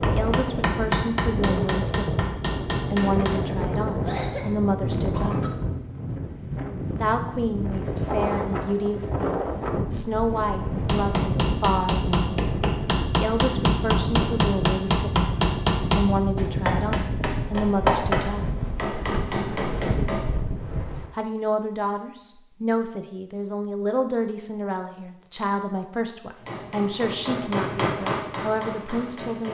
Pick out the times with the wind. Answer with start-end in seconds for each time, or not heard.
0.0-21.1.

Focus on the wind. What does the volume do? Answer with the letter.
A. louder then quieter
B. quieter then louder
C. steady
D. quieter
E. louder
C.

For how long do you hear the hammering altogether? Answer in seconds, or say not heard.
16 s.